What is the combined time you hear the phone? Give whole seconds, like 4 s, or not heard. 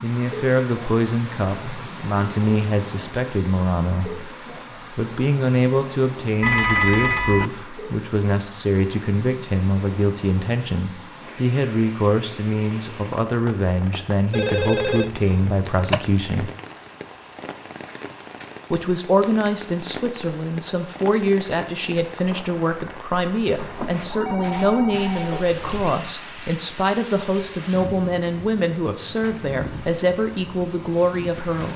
5 s.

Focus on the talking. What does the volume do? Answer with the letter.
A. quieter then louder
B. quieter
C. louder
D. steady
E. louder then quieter
D.